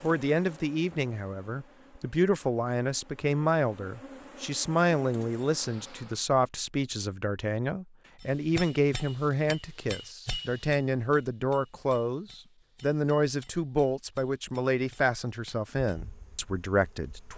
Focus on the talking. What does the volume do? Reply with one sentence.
The loudness of the talking stays about the same.